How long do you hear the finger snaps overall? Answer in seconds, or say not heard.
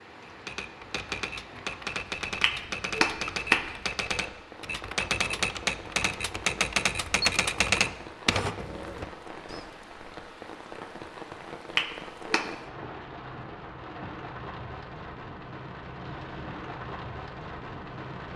2 s.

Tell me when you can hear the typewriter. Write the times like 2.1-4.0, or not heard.
0.2-9.7.